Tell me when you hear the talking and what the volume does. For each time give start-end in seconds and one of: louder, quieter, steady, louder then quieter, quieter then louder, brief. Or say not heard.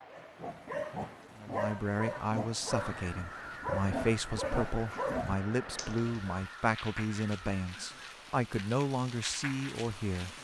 1.4-10.3 steady.